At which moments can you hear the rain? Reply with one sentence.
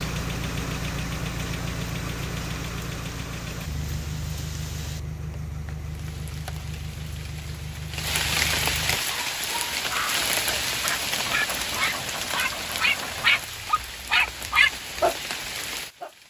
The rain can be heard from 0.0 to 16.2 s.